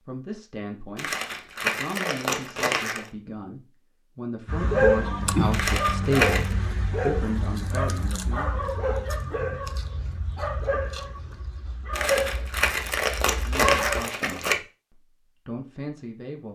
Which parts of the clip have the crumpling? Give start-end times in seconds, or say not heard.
0.9-3.1, 5.5-6.5, 11.9-14.6.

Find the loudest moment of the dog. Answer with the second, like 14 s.
5 s.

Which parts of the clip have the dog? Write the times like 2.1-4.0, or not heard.
4.5-14.1.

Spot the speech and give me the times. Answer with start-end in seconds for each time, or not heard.
0.0-8.6, 13.4-16.5.